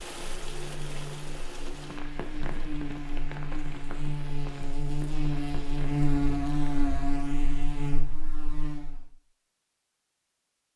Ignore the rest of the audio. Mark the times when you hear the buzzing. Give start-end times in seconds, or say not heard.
0.1-9.1.